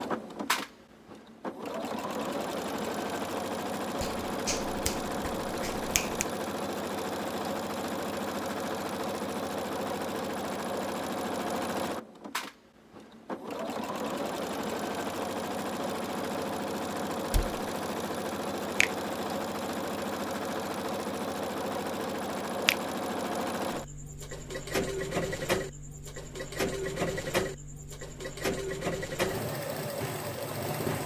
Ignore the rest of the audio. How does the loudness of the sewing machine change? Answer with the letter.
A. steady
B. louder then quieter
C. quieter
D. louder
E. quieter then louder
A.